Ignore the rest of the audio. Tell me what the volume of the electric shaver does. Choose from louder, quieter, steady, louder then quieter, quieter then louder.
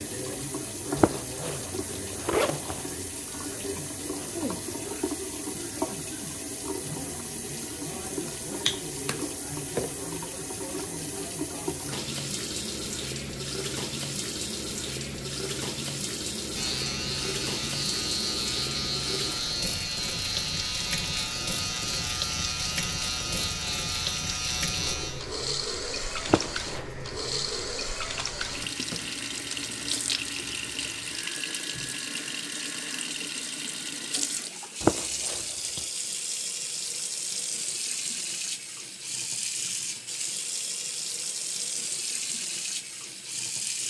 quieter.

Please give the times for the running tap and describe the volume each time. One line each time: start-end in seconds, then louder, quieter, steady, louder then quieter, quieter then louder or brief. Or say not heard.
0.0-43.8 steady.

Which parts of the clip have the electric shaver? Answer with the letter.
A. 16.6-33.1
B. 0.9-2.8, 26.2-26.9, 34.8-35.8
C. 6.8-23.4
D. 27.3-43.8
A.